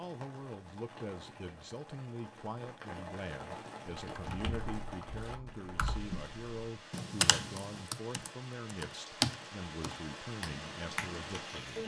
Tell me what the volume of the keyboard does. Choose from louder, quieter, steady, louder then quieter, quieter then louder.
louder then quieter.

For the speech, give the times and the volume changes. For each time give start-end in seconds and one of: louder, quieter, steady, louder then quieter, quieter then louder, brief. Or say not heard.
0.0-11.8 steady.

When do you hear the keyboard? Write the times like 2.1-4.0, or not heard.
4.1-11.4.